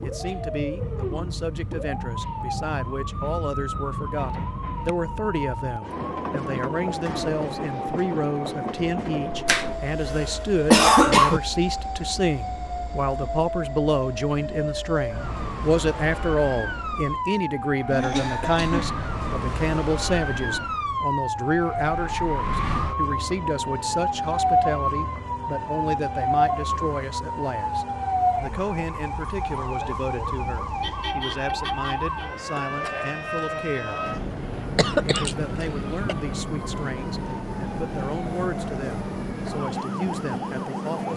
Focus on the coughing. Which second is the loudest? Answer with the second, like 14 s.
11 s.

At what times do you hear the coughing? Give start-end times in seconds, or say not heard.
9.4-11.4, 17.9-19.1, 34.8-36.1.